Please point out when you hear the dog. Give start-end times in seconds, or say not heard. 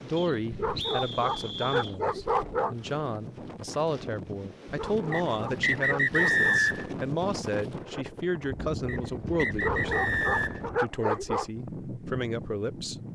0.5-2.8, 4.7-6.6, 9.5-11.4.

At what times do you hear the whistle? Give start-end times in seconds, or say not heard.
0.1-1.9, 5.1-6.8, 8.8-10.7.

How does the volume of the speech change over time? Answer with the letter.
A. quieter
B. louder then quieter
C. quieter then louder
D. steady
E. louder
D.